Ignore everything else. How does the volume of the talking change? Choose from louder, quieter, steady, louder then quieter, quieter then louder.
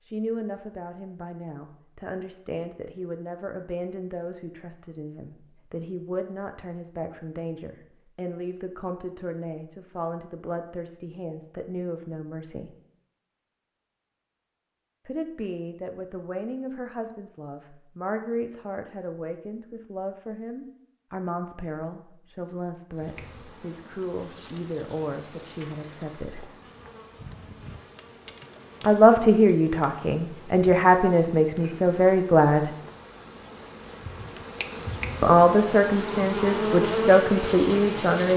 louder.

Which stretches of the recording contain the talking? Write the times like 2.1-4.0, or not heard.
0.1-12.7, 15.1-26.4, 28.8-32.7, 35.2-38.3.